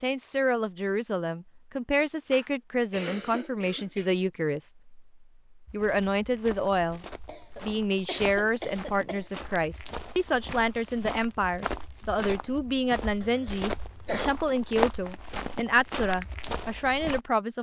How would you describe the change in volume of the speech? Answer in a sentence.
The loudness of the speech stays about the same.